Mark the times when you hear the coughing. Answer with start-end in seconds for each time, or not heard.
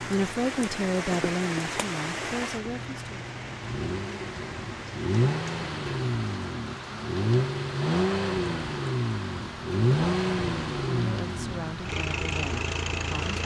not heard.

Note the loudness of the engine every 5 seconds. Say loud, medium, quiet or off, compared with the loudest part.
quiet, loud, loud.